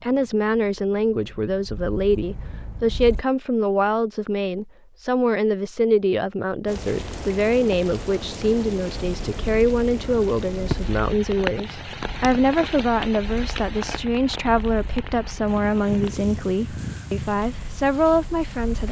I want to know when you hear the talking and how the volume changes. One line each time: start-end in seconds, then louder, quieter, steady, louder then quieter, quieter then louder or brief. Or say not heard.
0.0-18.8 steady.